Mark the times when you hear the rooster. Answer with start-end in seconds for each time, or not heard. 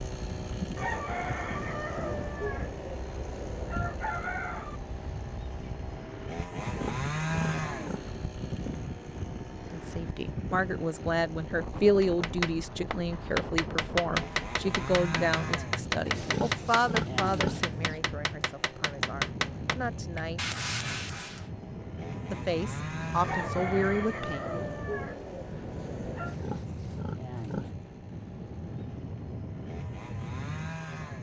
0.8-4.8, 23.2-26.4.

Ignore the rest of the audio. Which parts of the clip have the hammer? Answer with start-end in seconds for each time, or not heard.
12.0-21.4.